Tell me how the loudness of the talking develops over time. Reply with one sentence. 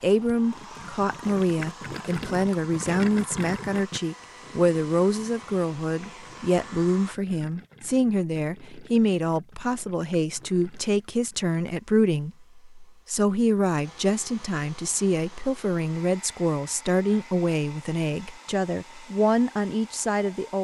The volume of the talking stays about the same.